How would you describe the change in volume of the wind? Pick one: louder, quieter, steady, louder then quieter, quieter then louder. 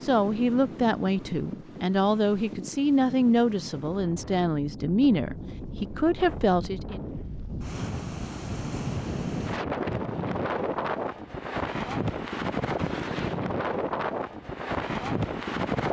louder.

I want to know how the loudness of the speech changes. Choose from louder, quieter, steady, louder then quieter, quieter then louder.
steady.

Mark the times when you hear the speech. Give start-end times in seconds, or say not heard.
0.0-7.0.